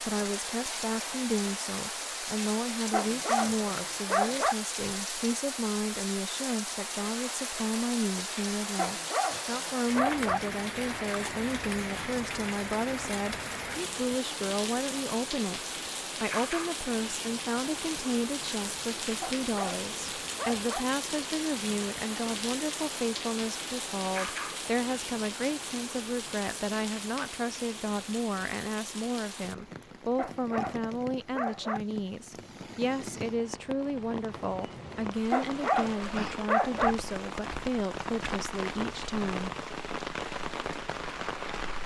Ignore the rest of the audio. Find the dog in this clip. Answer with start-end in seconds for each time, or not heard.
2.9-4.5, 8.8-10.4, 19.2-20.9, 30.1-31.8, 35.3-37.0.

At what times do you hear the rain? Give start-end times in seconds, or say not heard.
0.0-41.8.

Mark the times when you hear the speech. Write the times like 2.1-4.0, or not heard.
0.0-15.6, 16.2-39.5.